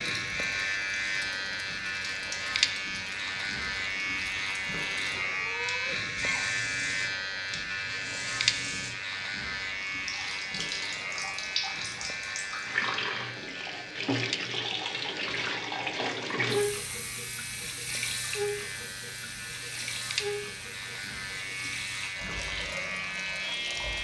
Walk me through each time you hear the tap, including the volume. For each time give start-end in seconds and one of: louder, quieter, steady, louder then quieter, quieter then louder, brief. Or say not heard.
0.1-23.9 louder then quieter.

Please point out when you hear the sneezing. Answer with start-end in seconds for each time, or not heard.
5.3-6.5.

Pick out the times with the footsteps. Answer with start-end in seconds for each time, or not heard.
not heard.